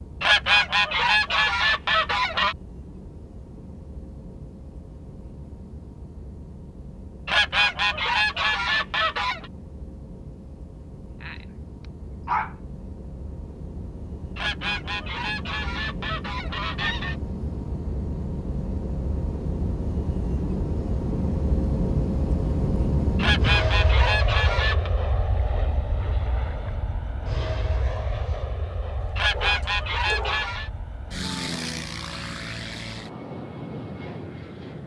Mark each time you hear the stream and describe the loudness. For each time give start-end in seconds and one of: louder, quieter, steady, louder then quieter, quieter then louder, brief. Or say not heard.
not heard.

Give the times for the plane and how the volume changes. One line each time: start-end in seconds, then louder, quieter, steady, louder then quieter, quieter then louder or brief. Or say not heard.
0.0-34.8 louder then quieter.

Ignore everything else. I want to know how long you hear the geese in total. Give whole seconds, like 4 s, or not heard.
11 s.